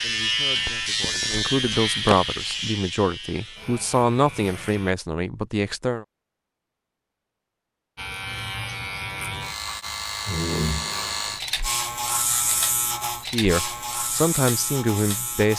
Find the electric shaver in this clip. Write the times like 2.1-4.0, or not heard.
0.0-5.0, 8.0-15.5.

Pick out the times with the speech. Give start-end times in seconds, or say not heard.
0.0-6.0, 13.3-15.5.